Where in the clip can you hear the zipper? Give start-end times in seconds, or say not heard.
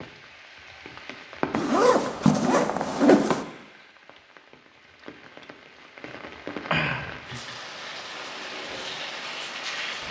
1.5-3.5.